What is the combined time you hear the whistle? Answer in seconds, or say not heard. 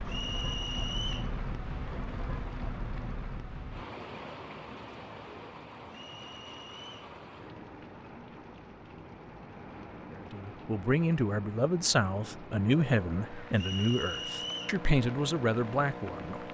4 s.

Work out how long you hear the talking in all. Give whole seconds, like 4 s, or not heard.
6 s.